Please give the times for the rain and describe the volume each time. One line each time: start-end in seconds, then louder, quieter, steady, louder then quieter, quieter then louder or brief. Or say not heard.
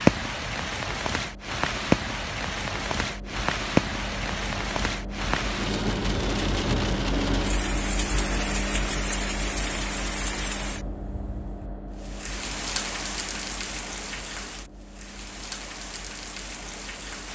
0.0-17.2 quieter.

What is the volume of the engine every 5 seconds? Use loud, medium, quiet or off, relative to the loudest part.
medium, loud, medium, quiet.